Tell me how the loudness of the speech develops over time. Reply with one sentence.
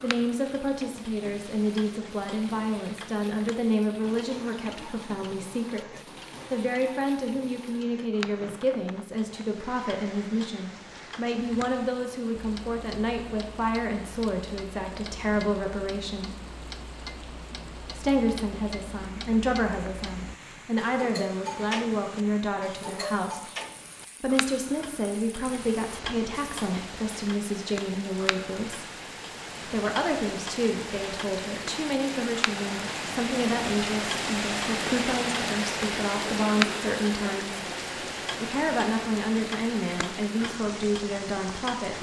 The volume of the speech stays about the same.